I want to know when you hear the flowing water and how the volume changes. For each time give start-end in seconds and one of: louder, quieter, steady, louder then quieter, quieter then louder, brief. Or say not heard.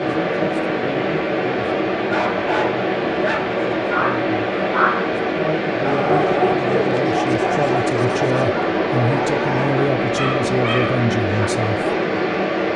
0.0-12.7 steady.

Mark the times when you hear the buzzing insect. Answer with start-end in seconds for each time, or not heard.
not heard.